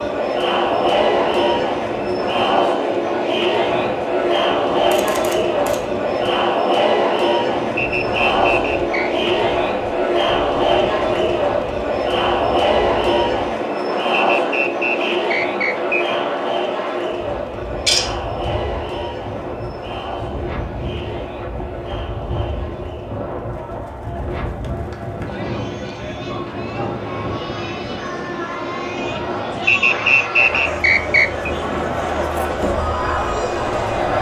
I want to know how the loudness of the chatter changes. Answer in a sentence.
The loudness of the chatter goes down, then up.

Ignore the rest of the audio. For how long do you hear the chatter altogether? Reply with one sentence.
You can hear the chatter for 34 seconds altogether.